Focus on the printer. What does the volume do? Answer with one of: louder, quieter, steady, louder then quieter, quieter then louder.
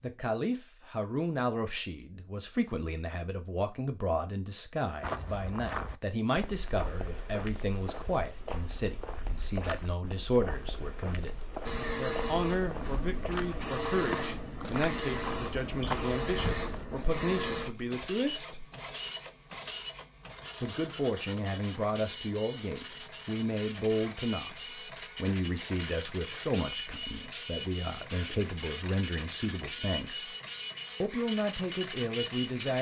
steady.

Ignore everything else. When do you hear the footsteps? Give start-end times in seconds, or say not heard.
5.0-16.9.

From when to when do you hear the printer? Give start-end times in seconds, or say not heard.
11.6-32.7.